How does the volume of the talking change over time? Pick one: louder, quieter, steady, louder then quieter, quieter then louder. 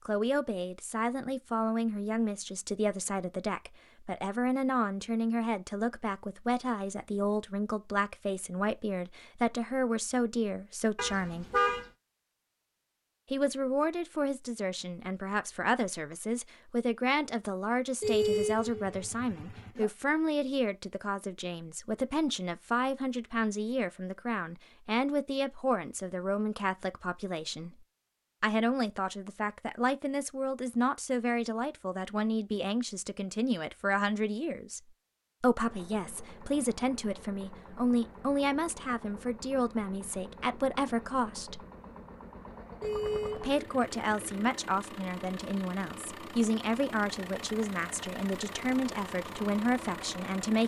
steady.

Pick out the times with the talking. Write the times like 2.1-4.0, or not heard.
0.1-11.4, 13.3-27.8, 28.4-34.8, 35.4-41.6, 43.4-50.6.